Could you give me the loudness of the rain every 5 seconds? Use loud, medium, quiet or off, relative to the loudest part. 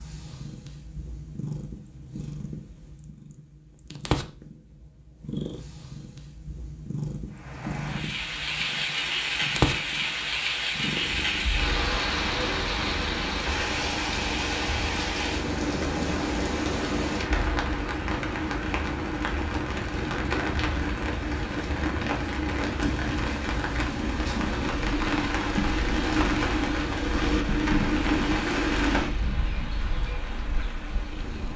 off, loud, loud, loud, loud, loud, quiet.